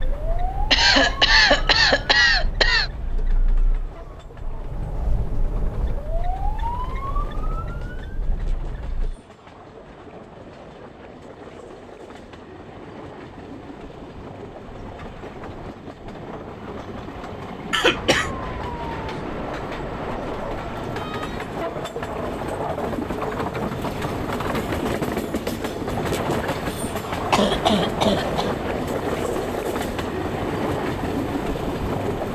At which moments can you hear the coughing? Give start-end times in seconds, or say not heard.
0.7-2.9, 17.7-18.3, 27.3-28.6.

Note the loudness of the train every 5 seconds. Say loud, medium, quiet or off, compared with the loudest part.
quiet, quiet, quiet, medium, loud, loud, loud.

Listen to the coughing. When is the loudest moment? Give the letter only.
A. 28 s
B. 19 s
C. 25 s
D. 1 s
D.